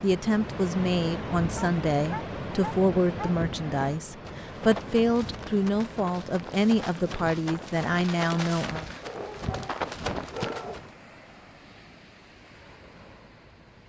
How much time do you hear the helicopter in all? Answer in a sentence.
You can't hear the helicopter here.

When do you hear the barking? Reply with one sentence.
The barking can be heard from 1.6 to 3.3 s and from 9.0 to 10.8 s.